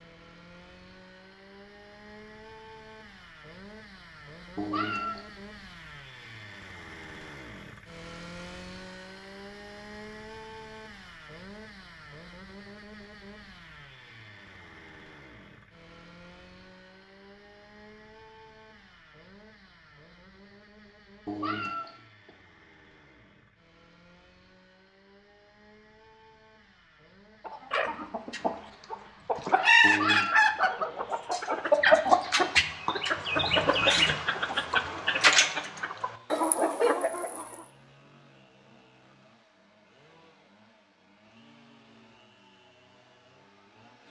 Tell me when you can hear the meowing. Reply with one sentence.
You can hear the meowing from 4.5 to 5.2 s, from 21.2 to 22.3 s and from 29.8 to 30.5 s.